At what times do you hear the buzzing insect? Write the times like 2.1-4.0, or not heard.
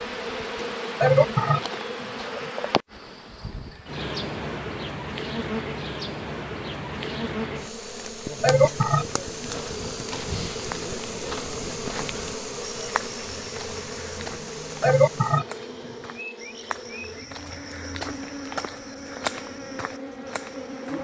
0.0-20.9.